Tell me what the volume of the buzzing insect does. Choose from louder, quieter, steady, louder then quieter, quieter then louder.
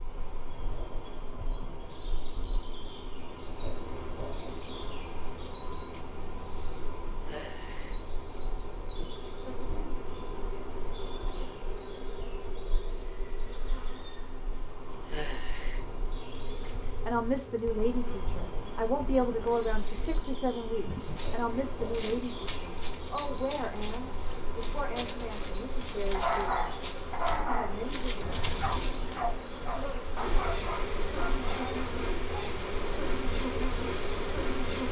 louder.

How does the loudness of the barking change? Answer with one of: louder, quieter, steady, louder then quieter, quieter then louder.
quieter.